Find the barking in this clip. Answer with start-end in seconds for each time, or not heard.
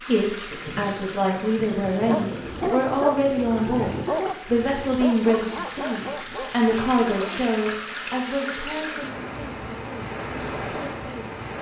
1.9-7.5.